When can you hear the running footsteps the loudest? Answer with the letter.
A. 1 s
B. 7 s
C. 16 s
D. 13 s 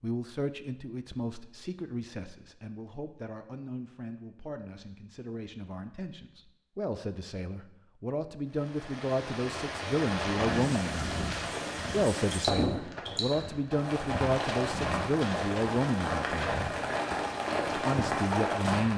D.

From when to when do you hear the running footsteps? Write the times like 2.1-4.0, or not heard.
10.3-18.9.